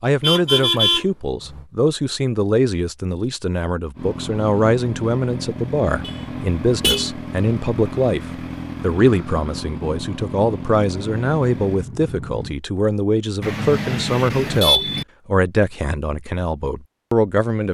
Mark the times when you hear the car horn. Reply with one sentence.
You can hear the car horn from 0.2 to 1.6 s, from 6.0 to 7.0 s and from 13.4 to 15.1 s.